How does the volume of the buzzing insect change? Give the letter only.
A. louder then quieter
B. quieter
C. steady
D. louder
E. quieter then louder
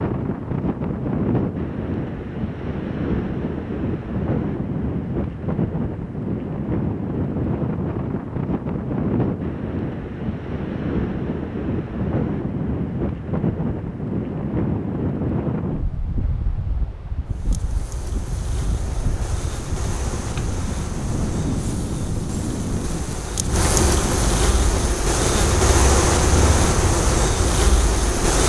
D.